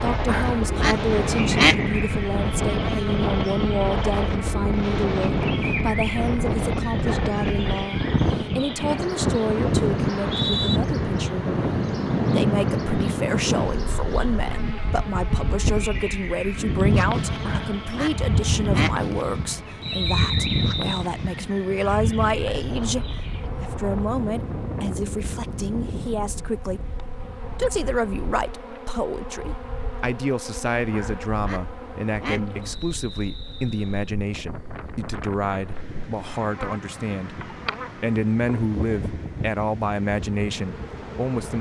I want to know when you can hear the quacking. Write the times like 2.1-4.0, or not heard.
0.2-1.8, 17.4-18.9, 30.9-32.4.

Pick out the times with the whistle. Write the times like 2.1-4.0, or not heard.
10.0-10.8, 19.8-21.1, 32.6-34.1.